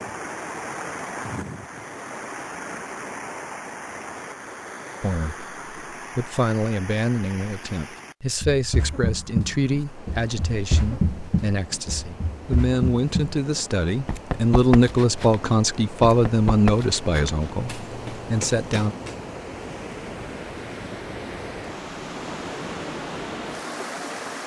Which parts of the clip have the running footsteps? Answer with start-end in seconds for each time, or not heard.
8.4-19.2.